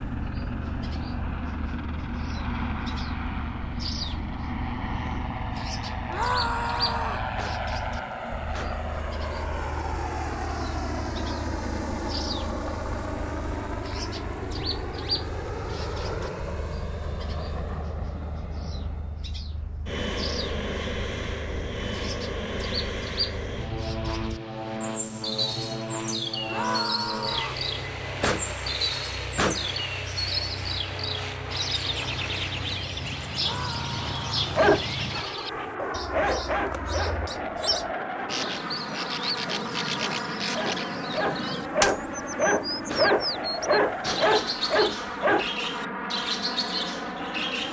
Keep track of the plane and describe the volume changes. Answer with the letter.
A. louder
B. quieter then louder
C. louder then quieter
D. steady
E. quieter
D.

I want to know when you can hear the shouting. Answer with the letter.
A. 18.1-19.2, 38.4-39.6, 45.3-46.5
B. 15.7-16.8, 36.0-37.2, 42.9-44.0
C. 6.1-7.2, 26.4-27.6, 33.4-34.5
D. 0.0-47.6
C.